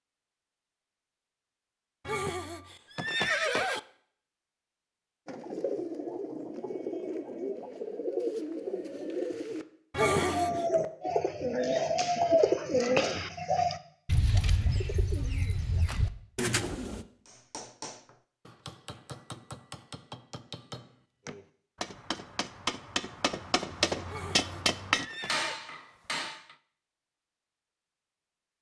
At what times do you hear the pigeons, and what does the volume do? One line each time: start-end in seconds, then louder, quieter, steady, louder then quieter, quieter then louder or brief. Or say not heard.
5.2-17.1 louder then quieter.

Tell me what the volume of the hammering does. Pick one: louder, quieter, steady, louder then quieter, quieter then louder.
louder.